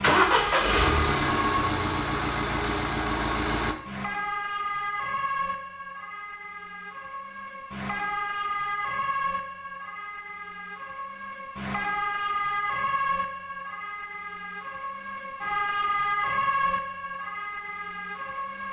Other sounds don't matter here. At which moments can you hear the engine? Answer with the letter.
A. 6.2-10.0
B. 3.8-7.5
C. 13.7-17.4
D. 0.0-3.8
D.